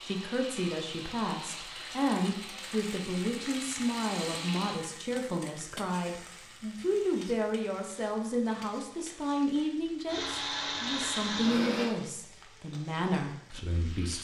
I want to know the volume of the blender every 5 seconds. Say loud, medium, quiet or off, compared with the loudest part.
medium, off, loud.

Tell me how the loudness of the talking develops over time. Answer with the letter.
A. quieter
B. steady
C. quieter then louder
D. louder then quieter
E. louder
B.